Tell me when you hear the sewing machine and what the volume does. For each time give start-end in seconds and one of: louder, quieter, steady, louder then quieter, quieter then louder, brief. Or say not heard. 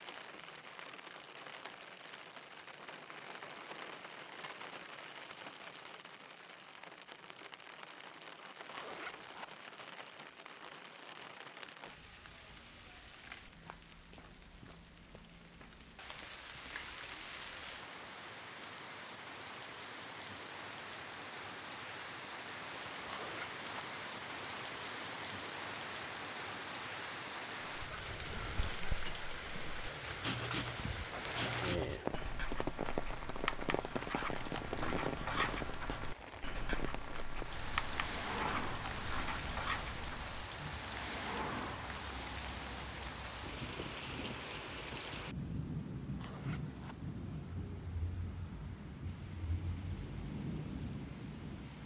not heard.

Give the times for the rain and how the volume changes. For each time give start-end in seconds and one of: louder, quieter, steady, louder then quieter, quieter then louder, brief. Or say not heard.
0.0-51.8 louder.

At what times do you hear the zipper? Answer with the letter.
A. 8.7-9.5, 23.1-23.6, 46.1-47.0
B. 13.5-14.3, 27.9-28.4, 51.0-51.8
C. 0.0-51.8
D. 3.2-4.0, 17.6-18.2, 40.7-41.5
A.